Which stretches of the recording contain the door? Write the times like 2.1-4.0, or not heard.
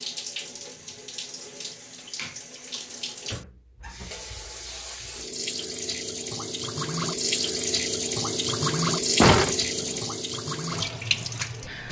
9.2-10.0.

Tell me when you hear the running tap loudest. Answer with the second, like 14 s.
9 s.